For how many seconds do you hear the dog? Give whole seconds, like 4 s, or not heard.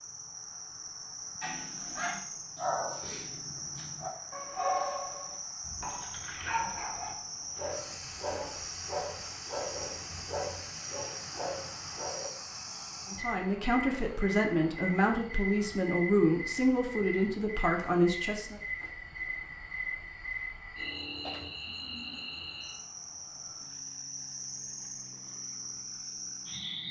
11 s.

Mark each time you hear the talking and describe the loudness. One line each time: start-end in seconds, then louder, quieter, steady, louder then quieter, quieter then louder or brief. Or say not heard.
13.1-18.6 steady.